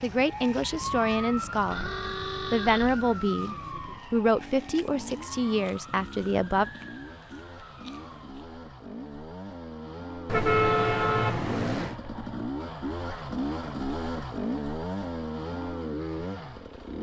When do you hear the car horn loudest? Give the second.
11 s.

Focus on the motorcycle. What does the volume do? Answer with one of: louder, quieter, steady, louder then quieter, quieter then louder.
louder.